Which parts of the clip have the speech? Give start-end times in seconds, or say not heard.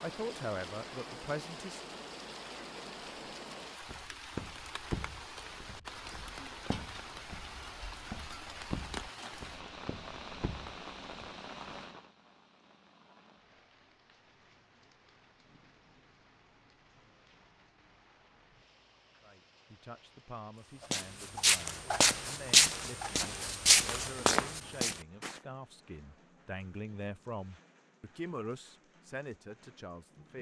0.0-1.9, 19.2-30.3.